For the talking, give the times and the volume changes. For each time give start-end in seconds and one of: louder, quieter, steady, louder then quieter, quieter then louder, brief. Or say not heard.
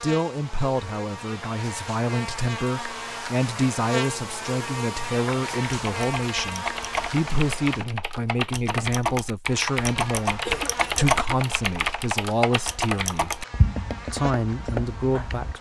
0.0-13.3 steady
14.1-15.5 brief.